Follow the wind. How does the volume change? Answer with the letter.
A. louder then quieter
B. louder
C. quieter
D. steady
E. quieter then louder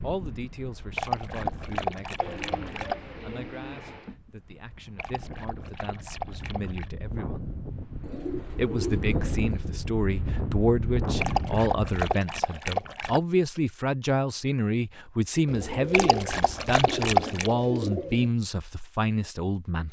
E.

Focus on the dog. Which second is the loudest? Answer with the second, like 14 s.
17 s.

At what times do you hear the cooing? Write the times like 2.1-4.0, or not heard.
2.2-4.2, 8.0-9.9, 15.4-18.3.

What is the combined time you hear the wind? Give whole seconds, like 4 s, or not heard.
12 s.